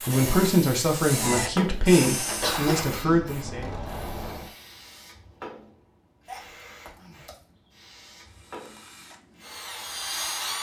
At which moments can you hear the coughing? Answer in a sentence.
You can hear the coughing from 2.4 to 3.3 s and from 6.2 to 7.4 s.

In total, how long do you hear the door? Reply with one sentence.
You can hear the door for 2 seconds altogether.